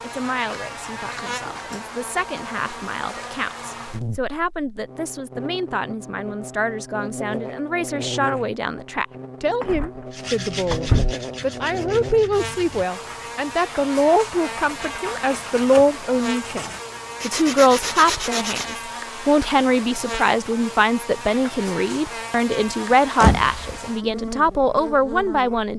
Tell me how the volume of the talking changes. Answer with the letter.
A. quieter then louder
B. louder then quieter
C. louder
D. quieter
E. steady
C.